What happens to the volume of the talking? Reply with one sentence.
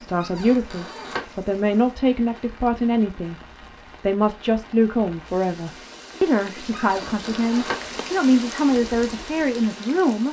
The loudness of the talking stays about the same.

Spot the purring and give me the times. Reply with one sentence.
The purring can't be heard in this clip.